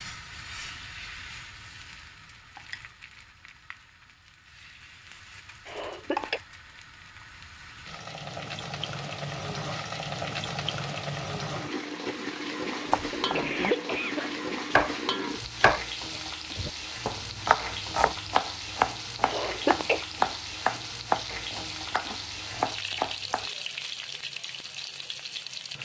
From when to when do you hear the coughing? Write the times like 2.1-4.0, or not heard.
5.7-6.4, 12.9-14.2, 19.2-20.1.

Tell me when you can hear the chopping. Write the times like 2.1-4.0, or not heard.
12.9-15.8, 16.6-23.5.